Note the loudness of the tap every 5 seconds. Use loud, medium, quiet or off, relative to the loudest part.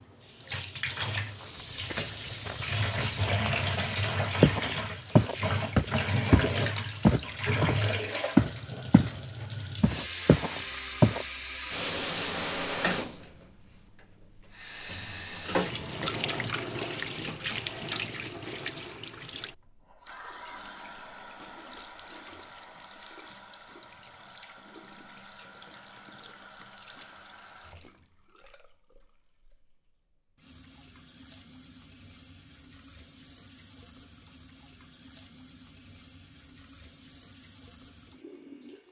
loud, loud, loud, loud, quiet, quiet, quiet, quiet.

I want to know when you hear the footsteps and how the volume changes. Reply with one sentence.
You can hear the footsteps from 1.4 to 9.2 s, getting louder; and briefly from 9.8 to 11.2 s.